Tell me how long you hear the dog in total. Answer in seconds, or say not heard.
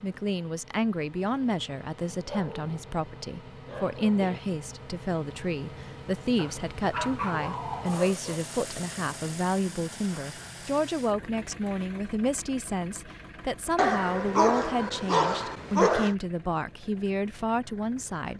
7 s.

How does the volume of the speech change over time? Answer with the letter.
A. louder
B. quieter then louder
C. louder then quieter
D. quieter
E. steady
E.